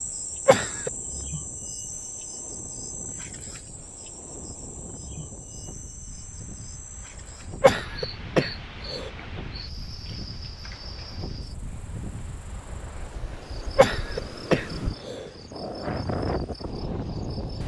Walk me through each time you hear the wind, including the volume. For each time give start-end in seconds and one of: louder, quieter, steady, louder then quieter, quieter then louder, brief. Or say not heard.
0.0-17.6 louder.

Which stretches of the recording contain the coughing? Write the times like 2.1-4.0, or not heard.
0.5-0.9, 7.6-9.1, 13.8-15.3.